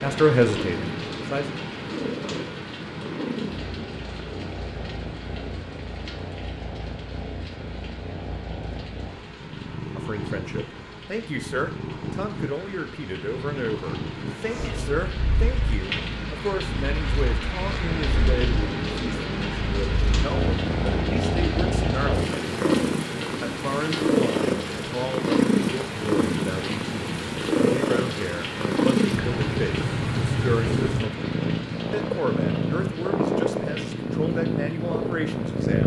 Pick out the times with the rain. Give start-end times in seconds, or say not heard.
0.0-35.8.